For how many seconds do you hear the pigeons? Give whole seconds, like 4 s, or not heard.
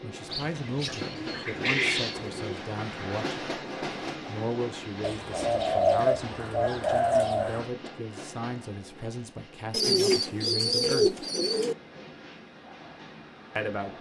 7 s.